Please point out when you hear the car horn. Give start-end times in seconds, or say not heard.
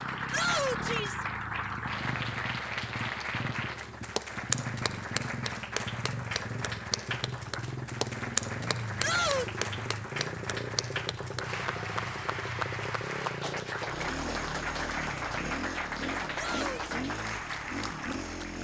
not heard.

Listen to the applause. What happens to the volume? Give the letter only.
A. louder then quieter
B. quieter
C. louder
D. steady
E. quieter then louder
D.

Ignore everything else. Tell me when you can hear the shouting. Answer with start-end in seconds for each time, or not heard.
0.3-1.2, 9.0-9.6, 16.3-16.9.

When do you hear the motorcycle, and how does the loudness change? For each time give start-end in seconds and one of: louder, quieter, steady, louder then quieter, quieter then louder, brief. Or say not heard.
0.0-18.5 steady.